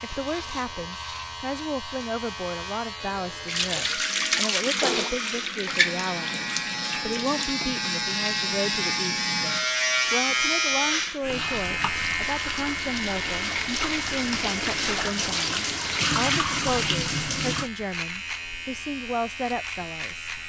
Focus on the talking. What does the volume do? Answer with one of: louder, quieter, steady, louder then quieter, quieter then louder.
steady.